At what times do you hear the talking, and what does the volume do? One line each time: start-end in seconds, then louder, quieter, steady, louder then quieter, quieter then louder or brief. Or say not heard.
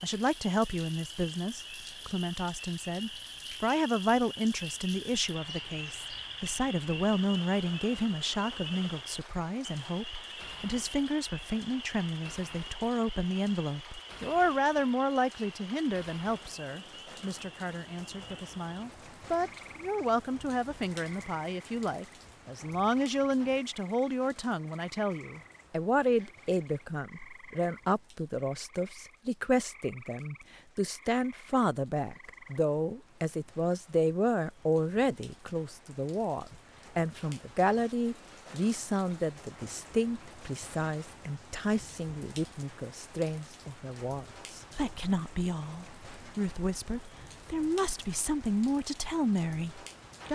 0.0-50.2 steady.